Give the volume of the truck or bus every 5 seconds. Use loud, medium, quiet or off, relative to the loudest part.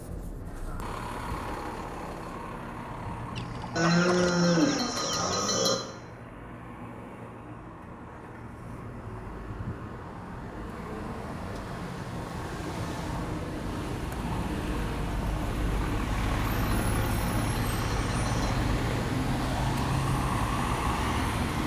medium, quiet, medium, loud, loud.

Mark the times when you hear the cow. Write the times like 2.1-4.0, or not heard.
3.8-5.8, 16.5-18.6.